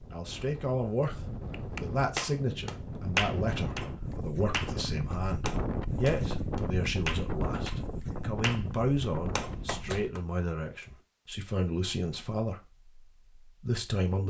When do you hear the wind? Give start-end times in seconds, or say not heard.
0.0-10.1.